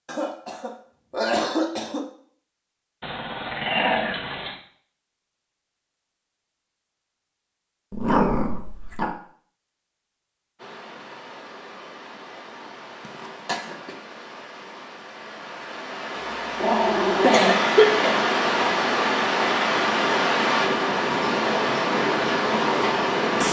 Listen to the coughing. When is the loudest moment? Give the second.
18 s.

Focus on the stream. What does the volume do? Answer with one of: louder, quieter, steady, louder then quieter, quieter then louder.
louder.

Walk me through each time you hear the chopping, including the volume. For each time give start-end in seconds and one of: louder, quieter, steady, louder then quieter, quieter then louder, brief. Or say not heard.
not heard.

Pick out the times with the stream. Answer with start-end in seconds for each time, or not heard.
10.6-23.4.